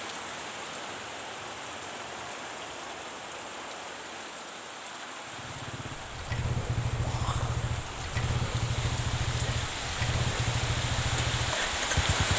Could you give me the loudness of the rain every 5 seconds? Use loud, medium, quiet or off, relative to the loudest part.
medium, medium, loud.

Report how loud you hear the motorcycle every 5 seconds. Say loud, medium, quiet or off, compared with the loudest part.
off, loud, loud.